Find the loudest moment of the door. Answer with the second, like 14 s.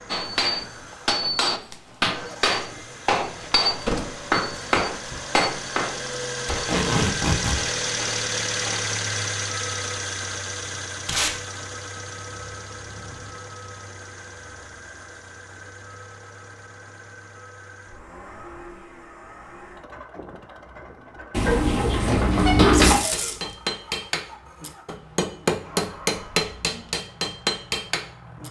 23 s.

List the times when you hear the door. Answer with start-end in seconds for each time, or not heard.
3.9-5.2, 21.3-23.0.